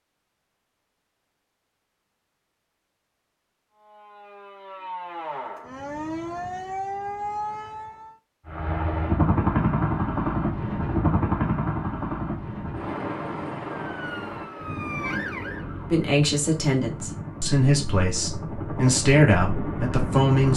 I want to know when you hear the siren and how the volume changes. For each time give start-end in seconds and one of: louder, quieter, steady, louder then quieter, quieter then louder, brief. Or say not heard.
3.7-8.2 louder
13.8-16.1 brief.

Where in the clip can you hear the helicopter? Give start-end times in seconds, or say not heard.
8.4-20.5.